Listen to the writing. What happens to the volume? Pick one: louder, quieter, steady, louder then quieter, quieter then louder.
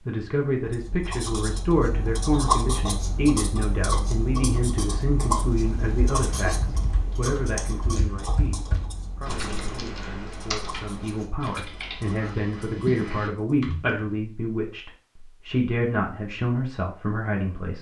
quieter.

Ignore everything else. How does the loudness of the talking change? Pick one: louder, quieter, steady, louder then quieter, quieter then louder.
quieter then louder.